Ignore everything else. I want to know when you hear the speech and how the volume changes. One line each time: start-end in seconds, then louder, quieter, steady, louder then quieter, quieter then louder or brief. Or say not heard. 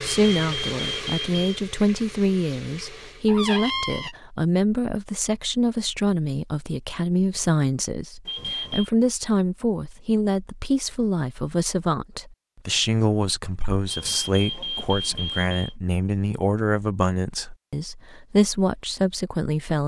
0.0-19.8 steady.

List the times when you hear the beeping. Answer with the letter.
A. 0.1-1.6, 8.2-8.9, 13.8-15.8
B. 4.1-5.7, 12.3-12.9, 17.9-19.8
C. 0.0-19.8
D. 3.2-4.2
A.